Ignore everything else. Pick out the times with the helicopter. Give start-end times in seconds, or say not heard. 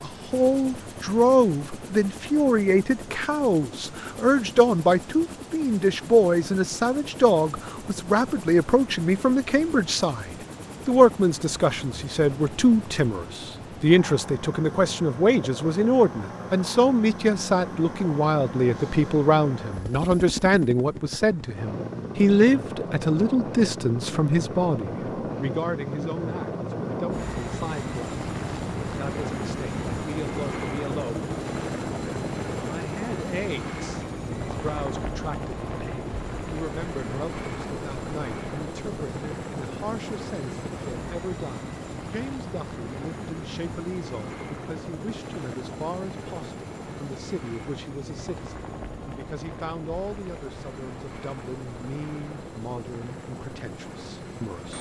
0.0-54.7.